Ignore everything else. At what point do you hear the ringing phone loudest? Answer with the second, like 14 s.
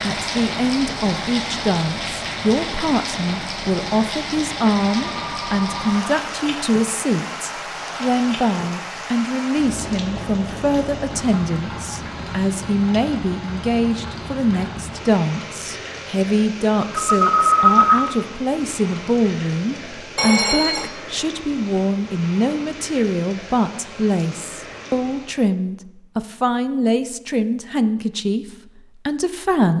18 s.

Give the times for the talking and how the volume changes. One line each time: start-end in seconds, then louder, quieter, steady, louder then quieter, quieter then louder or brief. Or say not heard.
0.0-29.7 steady.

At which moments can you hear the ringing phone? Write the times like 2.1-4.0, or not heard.
4.8-6.0, 16.9-18.1, 20.1-20.9.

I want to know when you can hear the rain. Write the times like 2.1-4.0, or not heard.
0.0-25.6.